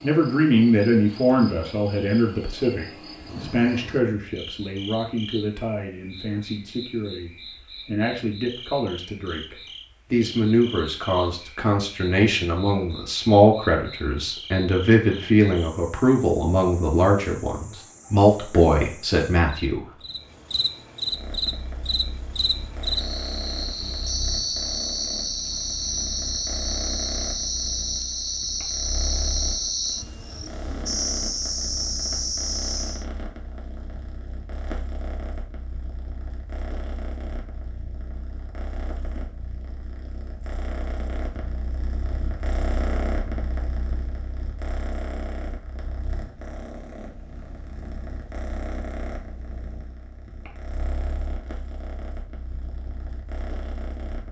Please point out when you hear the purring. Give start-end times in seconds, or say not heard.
21.1-54.2.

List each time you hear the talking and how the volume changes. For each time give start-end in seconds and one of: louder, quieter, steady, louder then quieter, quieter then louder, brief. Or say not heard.
0.0-19.9 quieter then louder.